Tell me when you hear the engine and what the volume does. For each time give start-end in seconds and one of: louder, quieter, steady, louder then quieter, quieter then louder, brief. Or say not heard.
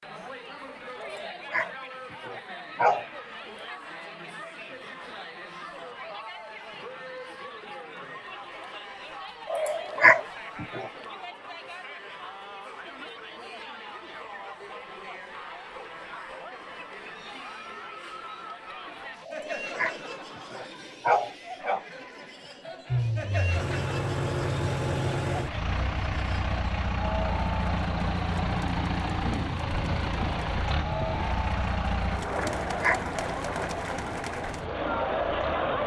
22.9-35.8 quieter.